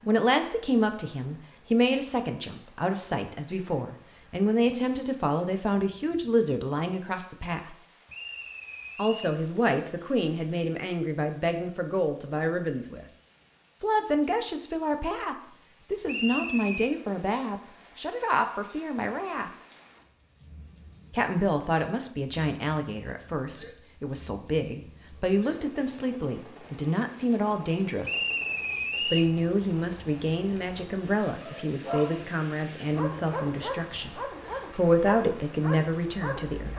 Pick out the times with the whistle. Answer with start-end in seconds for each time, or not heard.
8.1-9.3, 16.1-16.9, 28.0-29.3.